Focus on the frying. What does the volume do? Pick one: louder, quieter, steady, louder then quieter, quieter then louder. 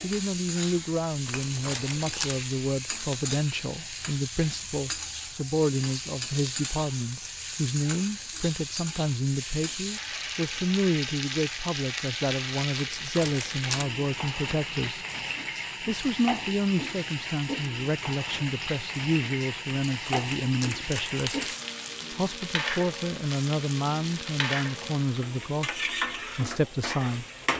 steady.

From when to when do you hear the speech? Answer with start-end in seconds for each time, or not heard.
0.0-15.1, 15.8-21.5, 22.1-27.2.